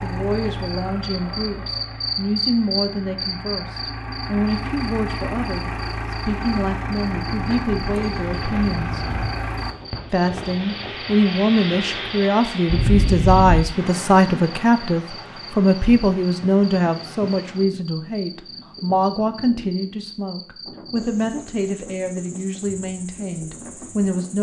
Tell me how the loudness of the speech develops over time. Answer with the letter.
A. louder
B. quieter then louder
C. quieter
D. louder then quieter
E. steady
D.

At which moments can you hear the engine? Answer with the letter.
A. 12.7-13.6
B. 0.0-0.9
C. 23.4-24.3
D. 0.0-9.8
D.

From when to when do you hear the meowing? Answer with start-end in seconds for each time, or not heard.
12.7-13.6.